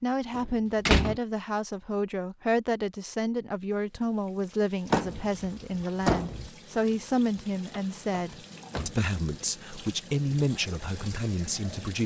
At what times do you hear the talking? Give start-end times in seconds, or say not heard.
0.0-12.0.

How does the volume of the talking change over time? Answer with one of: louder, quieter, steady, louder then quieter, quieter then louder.
steady.